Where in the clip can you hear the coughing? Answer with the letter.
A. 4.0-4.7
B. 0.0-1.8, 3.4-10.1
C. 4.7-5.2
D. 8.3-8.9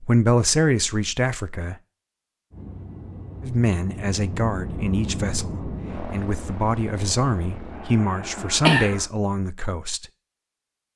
D.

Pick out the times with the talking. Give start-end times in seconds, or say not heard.
0.0-1.8, 3.4-10.1.